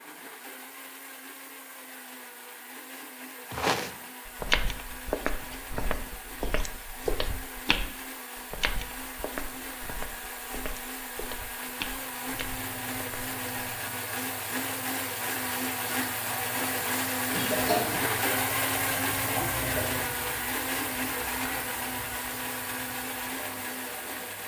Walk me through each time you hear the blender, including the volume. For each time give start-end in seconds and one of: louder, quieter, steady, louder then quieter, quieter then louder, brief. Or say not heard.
0.0-24.4 louder.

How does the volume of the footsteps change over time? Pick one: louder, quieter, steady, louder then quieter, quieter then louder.
quieter.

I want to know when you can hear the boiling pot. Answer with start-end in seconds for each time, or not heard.
11.6-24.4.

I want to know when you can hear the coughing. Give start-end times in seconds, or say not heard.
17.3-18.0.